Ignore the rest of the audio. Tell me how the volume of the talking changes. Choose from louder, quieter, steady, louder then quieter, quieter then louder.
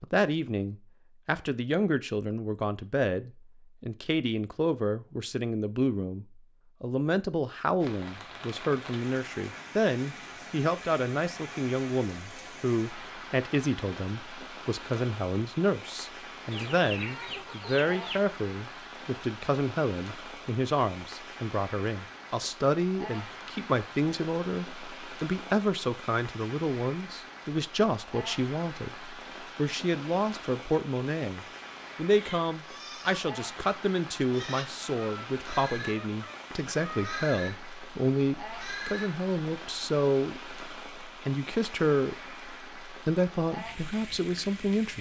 steady.